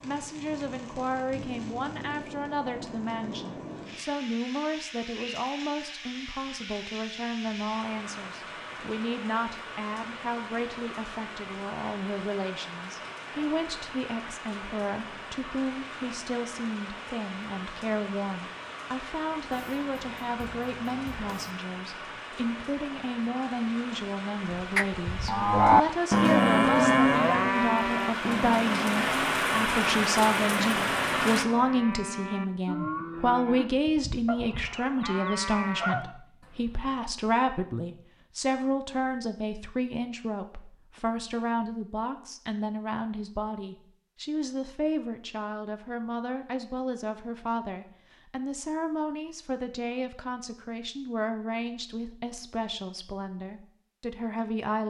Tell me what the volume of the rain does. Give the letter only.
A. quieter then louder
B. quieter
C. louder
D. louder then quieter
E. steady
C.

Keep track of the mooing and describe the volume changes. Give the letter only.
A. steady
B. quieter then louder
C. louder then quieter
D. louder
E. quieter
E.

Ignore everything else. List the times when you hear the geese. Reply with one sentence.
The geese can be heard from 19.5 to 21.6 s and from 34.2 to 36.1 s.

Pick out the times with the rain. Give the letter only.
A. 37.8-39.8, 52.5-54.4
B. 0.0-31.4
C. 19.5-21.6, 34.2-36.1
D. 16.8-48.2
B.